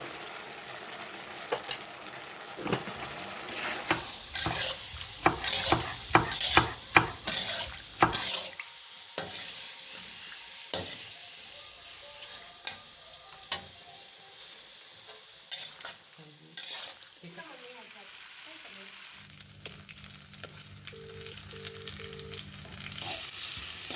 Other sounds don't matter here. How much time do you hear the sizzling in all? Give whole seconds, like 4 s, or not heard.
24 s.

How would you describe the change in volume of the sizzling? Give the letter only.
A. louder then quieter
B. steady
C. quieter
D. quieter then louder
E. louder
C.